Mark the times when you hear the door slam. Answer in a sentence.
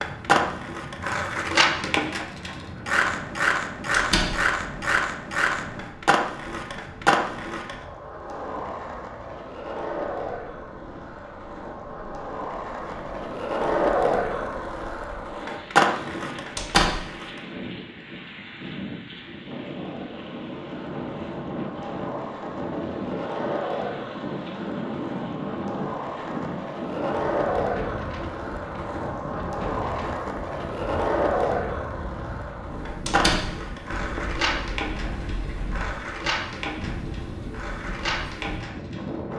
The door slam can be heard from 3.9 to 4.4 s, from 16.6 to 17.0 s and from 33.0 to 33.5 s.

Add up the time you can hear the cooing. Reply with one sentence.
You can hear the cooing for 2 seconds altogether.